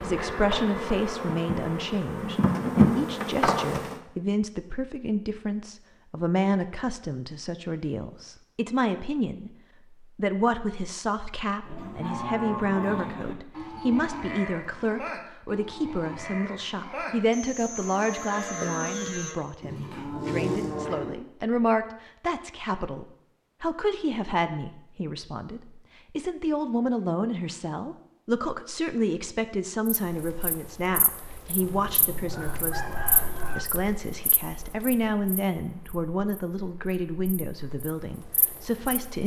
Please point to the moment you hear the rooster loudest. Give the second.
33 s.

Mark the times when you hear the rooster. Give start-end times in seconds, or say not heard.
31.6-33.6.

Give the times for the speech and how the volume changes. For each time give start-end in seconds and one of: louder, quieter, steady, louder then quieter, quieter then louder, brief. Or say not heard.
0.0-39.2 steady.